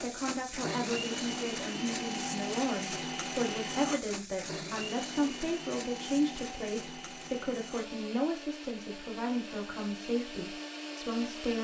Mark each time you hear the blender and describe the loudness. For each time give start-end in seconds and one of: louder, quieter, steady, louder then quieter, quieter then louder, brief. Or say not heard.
0.0-11.5 quieter.